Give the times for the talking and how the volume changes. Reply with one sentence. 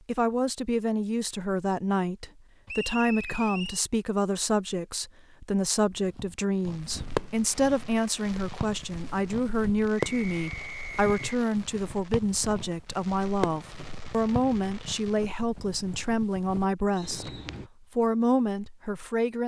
You can hear the talking from 0.1 to 19.4 s, at a steady volume.